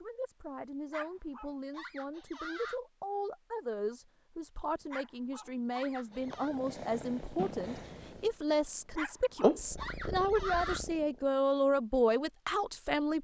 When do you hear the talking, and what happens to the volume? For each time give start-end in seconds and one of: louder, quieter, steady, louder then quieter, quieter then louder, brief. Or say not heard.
0.0-13.1 louder.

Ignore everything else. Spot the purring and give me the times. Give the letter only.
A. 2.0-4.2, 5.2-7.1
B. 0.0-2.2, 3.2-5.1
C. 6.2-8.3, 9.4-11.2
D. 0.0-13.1
C.